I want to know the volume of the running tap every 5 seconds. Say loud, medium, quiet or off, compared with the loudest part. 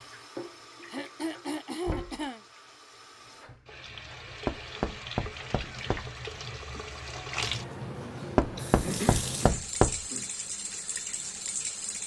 medium, loud, loud.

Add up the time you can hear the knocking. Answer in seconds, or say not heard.
4 s.